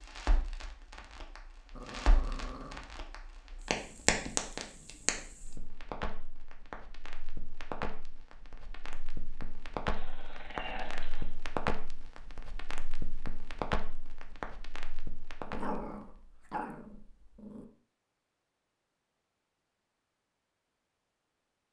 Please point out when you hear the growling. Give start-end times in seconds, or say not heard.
1.7-2.9, 9.9-11.3, 15.4-17.6.